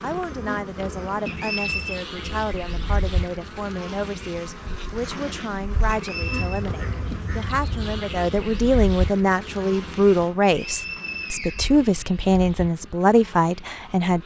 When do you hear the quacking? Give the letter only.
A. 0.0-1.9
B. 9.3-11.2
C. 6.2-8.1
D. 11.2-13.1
C.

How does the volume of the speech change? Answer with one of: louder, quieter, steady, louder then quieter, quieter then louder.
louder.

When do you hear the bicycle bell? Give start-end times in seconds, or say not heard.
not heard.